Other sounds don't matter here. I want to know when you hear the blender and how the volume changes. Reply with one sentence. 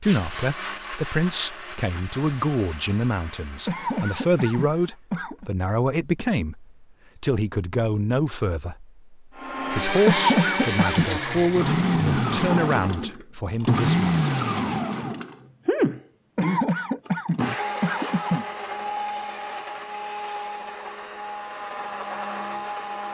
The blender can be heard from 0.0 to 5.0 s, getting quieter; and from 9.3 to 23.0 s, getting quieter.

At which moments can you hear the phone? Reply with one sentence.
The phone can't be heard in this clip.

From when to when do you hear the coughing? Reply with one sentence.
You can hear the coughing from 3.6 to 5.5 s, from 10.1 to 11.2 s and from 16.4 to 18.4 s.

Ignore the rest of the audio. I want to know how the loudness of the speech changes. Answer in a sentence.
The volume of the speech stays about the same.